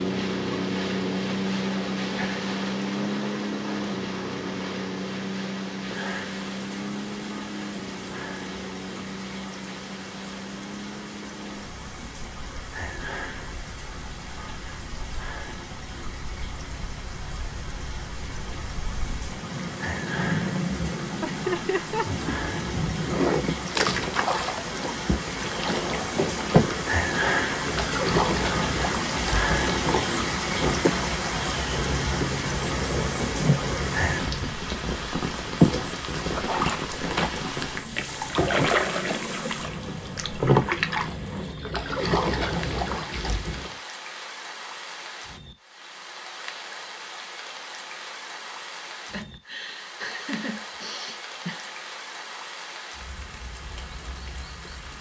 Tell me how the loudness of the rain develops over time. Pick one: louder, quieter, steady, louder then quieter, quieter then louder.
louder then quieter.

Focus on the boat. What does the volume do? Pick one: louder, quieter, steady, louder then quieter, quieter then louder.
quieter then louder.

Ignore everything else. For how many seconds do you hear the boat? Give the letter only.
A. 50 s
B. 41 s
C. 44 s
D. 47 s
C.